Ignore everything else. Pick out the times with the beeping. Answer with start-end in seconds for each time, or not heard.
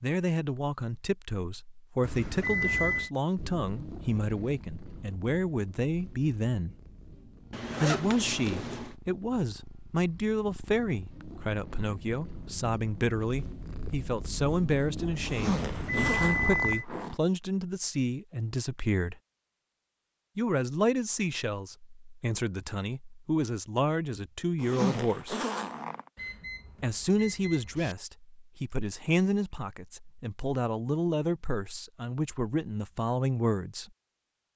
2.0-3.1, 15.5-16.9, 26.1-27.9.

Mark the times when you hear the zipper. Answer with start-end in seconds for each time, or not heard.
7.5-8.9, 15.2-17.1, 24.6-26.1.